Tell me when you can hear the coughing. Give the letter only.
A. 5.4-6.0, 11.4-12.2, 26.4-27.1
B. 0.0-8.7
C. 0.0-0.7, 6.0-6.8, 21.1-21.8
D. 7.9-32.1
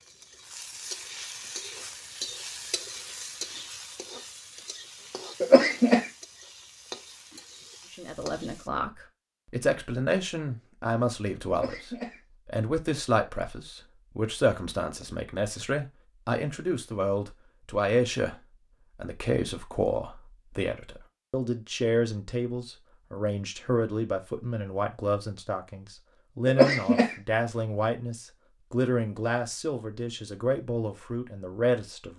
A.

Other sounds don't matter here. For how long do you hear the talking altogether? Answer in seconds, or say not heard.
24 s.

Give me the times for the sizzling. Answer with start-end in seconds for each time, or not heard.
0.0-8.7.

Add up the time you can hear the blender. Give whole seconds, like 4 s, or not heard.
not heard.